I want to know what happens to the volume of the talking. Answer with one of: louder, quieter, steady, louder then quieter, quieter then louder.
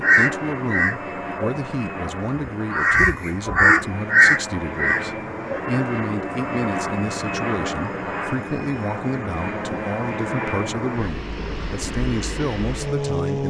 steady.